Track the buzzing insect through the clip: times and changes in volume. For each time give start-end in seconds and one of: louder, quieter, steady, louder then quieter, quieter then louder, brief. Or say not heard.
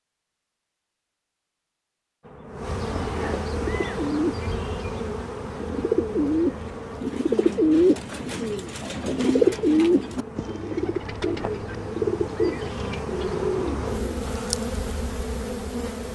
2.2-16.1 quieter then louder.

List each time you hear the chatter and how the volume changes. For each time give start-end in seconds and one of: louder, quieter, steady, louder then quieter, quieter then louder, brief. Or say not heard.
not heard.